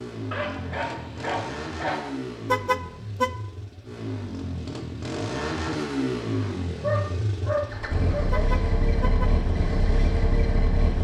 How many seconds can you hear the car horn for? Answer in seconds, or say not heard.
2 s.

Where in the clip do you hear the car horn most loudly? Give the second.
3 s.